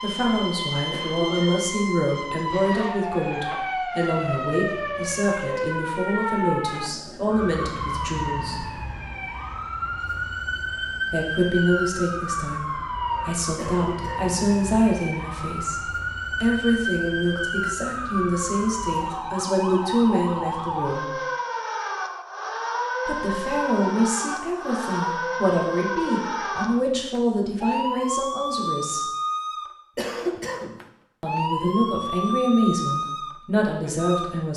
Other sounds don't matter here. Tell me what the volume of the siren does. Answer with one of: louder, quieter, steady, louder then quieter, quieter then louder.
steady.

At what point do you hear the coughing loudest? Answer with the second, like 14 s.
30 s.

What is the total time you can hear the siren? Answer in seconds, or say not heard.
34 s.